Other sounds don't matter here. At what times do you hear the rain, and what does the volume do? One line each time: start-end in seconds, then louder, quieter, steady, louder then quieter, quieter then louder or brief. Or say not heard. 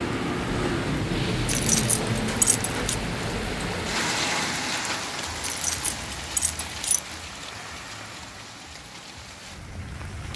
0.0-10.3 quieter.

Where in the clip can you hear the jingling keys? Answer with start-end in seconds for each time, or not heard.
1.4-3.0, 5.4-7.2.